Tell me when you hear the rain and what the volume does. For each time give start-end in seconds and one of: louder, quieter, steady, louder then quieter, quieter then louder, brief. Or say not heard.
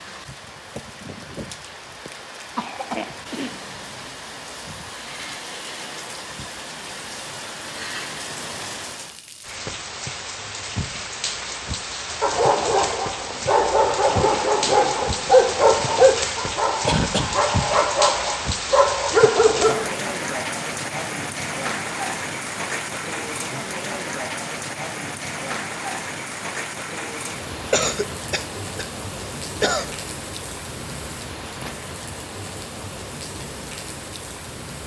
0.0-34.8 louder then quieter.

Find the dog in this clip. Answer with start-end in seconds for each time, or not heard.
12.2-19.9.